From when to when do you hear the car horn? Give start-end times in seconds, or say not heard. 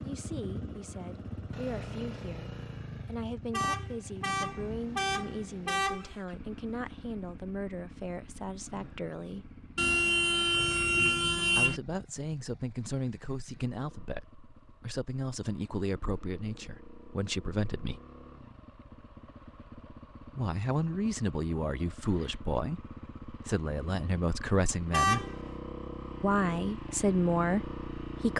3.5-6.2, 9.8-11.8, 24.9-25.6.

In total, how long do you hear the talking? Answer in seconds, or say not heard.
23 s.